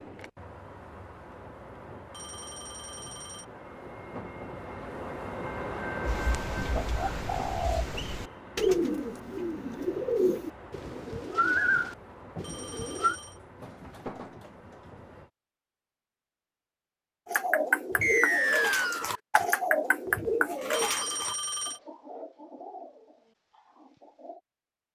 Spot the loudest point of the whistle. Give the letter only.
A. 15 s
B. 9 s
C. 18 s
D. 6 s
C.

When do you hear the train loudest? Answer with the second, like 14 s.
6 s.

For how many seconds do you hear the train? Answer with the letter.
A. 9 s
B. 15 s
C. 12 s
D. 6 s
B.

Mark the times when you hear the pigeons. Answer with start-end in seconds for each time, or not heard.
6.0-13.2, 17.2-24.4.